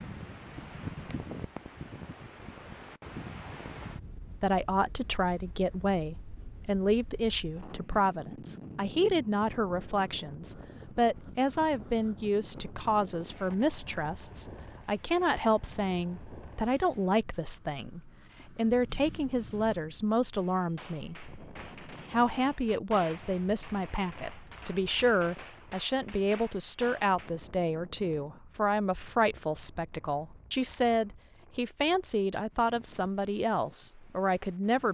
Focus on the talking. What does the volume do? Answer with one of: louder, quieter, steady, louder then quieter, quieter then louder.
steady.